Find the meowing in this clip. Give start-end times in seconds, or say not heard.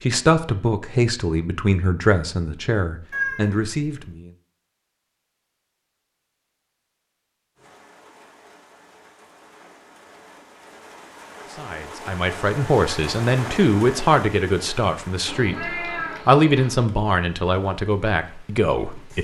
3.1-4.1, 15.2-16.8.